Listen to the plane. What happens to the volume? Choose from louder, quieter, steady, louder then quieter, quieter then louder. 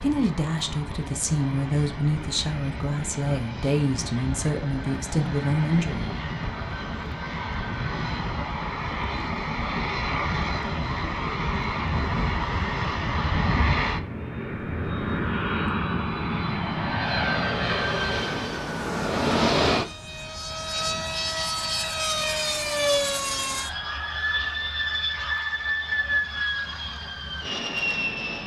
louder.